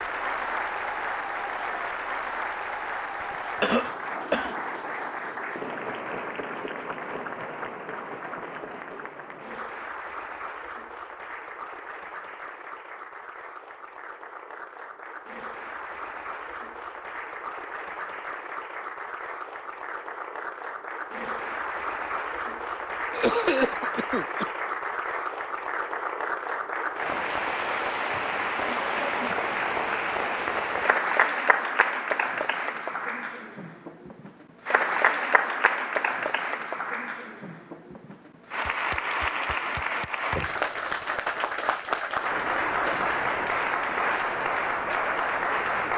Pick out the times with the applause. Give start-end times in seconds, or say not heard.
0.0-45.9.